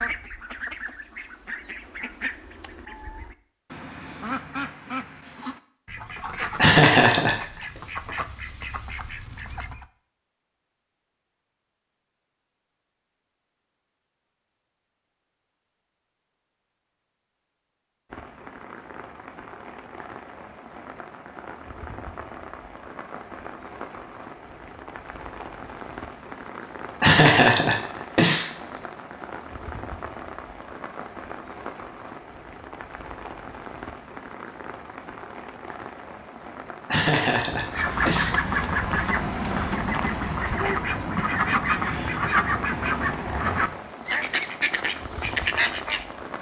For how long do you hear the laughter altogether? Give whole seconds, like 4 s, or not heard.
4 s.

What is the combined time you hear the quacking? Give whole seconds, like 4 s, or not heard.
18 s.